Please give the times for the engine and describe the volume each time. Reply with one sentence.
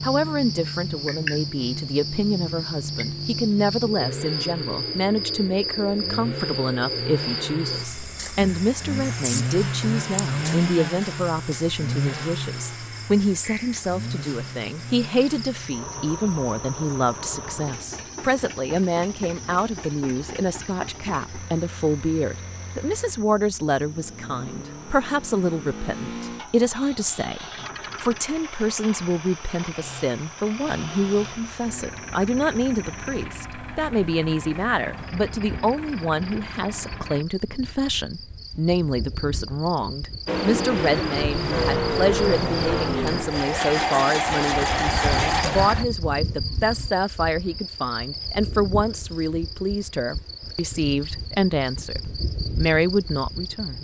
The engine can be heard from 4.0 to 37.2 s, getting quieter; and from 40.2 to 45.9 s, at a steady volume.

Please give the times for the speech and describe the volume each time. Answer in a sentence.
The speech can be heard from 0.0 to 53.7 s, at a steady volume.